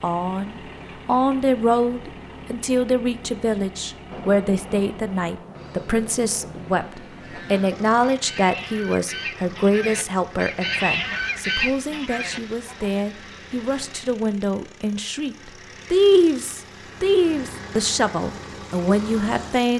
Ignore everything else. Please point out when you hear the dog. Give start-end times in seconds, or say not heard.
not heard.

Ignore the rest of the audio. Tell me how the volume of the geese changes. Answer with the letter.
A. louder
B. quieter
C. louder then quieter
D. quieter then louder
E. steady
A.